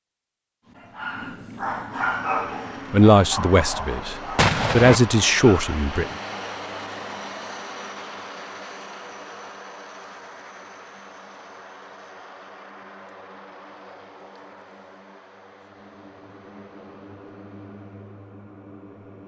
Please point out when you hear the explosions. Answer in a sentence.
You can hear the explosions from 4.3 to 5.0 s.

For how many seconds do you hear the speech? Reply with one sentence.
You can hear the speech for 3 seconds altogether.